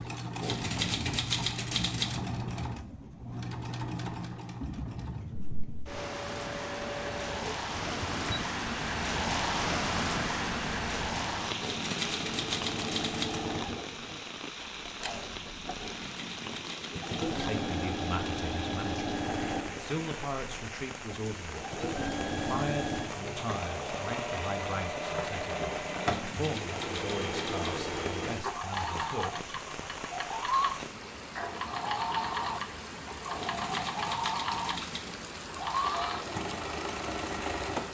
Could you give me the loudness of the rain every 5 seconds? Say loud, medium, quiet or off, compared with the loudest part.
medium, loud, loud, medium, medium, medium, medium, medium.